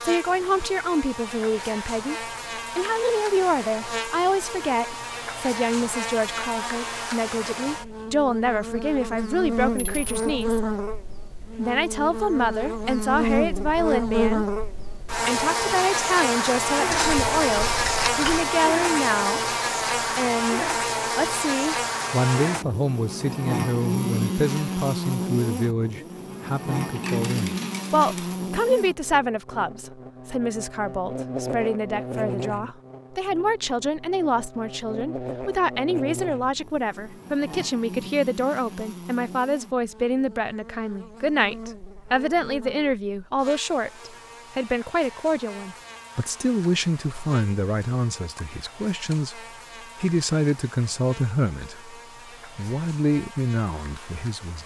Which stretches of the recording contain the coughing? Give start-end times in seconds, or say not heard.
not heard.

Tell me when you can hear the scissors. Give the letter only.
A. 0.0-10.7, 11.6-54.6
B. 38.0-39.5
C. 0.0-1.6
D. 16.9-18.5
D.